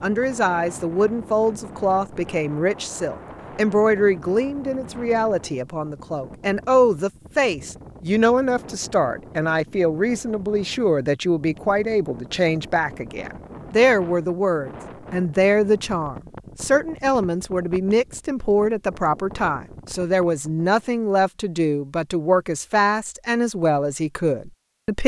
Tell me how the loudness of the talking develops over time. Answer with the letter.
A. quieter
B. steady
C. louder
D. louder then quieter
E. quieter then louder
B.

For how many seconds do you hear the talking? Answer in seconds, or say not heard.
25 s.